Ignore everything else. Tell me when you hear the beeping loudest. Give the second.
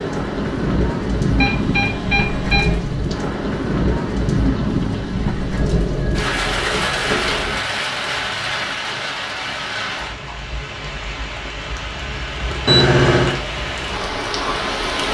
13 s.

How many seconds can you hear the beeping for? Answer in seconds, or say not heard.
4 s.